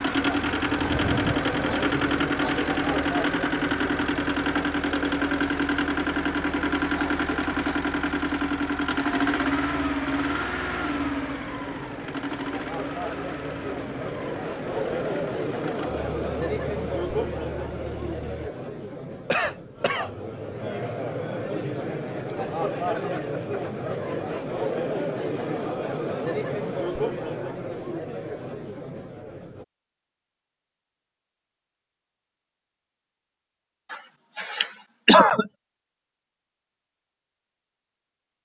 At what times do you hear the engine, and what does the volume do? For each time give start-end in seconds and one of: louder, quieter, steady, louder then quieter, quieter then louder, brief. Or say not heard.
0.0-18.5 quieter.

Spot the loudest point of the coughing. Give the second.
35 s.